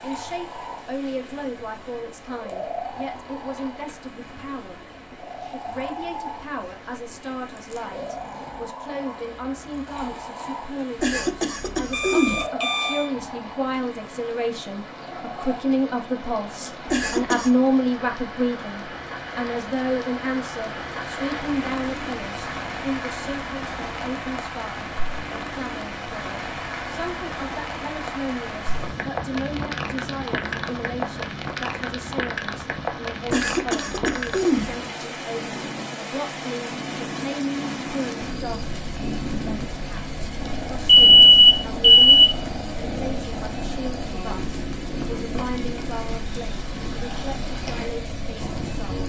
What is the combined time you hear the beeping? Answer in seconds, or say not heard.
3 s.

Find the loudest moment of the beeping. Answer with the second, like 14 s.
41 s.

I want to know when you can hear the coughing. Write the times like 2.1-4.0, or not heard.
10.9-12.4, 16.9-17.5, 33.2-34.8.